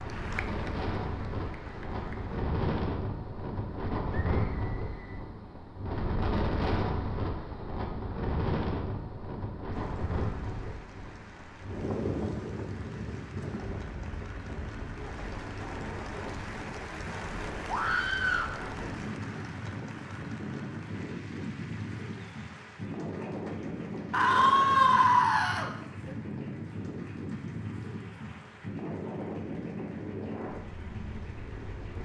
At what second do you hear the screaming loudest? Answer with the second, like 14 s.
25 s.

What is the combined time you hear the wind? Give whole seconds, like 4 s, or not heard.
32 s.